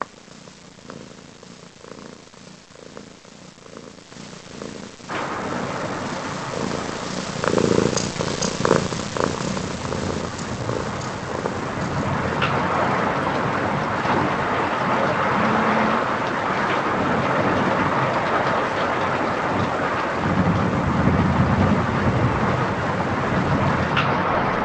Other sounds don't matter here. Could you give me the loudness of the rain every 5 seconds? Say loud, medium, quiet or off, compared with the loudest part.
off, medium, loud, loud, loud.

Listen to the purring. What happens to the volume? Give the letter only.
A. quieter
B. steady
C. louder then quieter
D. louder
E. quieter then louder
C.